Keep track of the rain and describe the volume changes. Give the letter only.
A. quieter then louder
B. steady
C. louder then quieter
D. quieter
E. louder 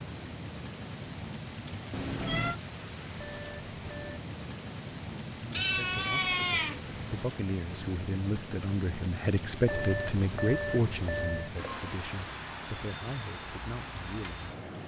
B.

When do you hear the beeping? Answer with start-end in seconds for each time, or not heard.
3.1-4.2, 9.7-11.6.